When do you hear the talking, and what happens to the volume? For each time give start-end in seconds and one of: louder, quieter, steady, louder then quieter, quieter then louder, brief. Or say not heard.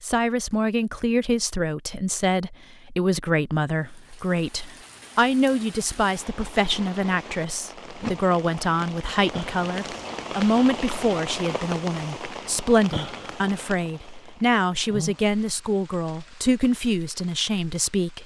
0.0-18.2 steady.